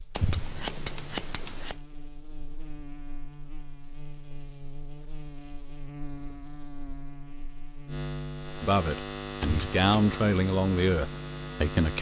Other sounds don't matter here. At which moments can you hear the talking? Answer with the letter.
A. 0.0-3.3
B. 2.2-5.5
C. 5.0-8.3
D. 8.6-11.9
D.